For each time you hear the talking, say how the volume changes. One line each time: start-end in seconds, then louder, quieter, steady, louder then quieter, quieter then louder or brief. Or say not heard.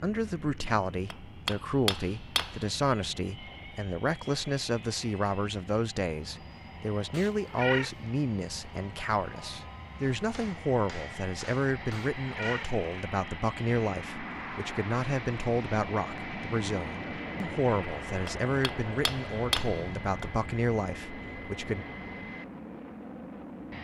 0.0-21.9 steady.